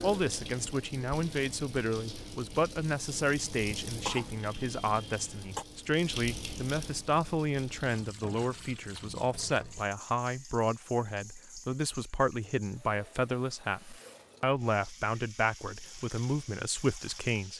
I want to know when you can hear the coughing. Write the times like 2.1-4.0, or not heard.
4.0-5.7.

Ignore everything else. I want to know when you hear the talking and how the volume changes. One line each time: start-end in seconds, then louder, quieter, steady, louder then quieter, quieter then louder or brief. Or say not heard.
0.0-17.5 steady.